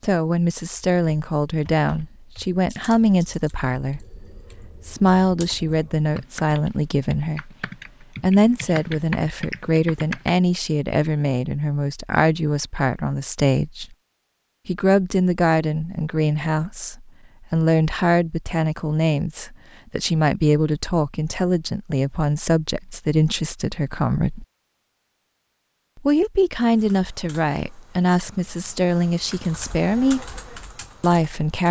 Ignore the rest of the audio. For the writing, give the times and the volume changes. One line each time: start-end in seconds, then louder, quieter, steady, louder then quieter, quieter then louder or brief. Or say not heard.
not heard.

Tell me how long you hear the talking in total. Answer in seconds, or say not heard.
27 s.